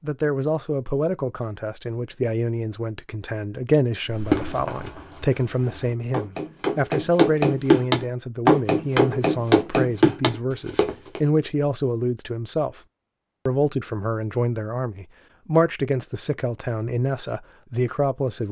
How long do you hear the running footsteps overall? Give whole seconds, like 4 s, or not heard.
7 s.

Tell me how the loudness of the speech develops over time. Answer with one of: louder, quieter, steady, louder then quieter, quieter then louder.
steady.